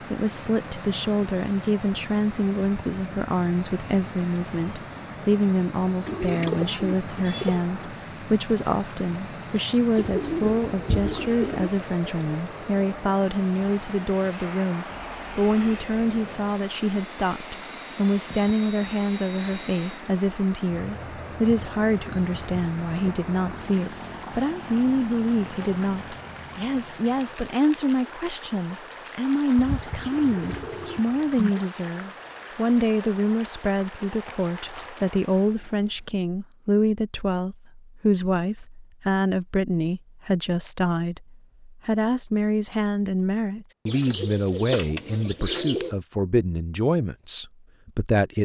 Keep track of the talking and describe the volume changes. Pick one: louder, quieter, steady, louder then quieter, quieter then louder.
steady.